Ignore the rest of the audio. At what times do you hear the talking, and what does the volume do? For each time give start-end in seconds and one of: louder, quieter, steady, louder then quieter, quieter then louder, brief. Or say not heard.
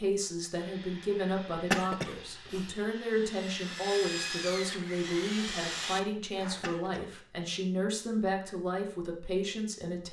0.0-10.0 steady.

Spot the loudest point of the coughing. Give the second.
2 s.